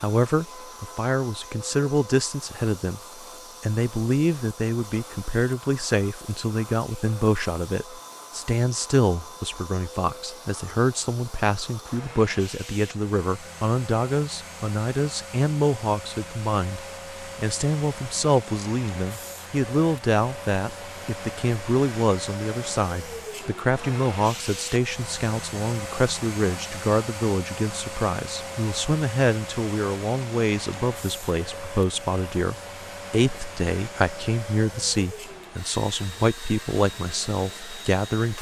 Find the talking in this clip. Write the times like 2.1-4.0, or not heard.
0.0-3.0, 3.6-38.3.